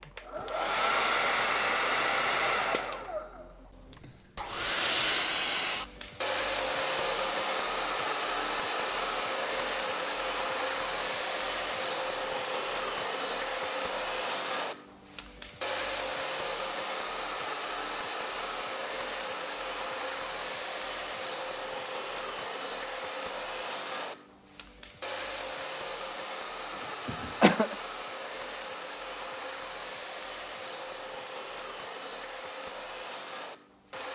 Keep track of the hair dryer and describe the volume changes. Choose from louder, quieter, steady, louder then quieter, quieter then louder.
quieter.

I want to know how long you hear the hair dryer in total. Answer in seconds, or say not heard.
34 s.